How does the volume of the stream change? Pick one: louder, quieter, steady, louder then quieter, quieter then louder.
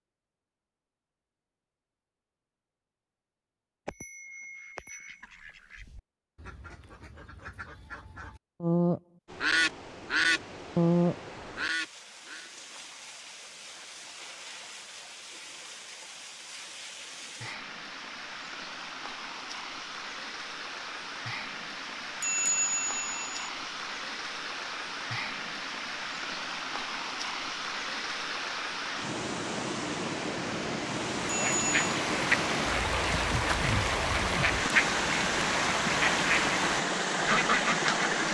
louder.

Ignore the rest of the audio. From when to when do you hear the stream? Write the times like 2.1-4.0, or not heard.
9.2-38.2.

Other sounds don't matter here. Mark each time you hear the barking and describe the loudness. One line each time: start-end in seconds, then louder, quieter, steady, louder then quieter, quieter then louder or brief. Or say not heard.
not heard.